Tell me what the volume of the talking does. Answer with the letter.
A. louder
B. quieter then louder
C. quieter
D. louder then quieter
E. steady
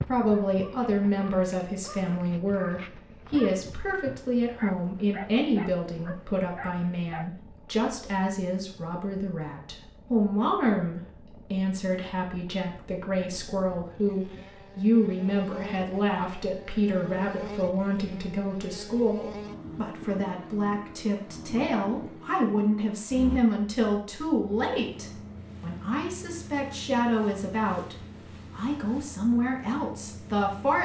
E.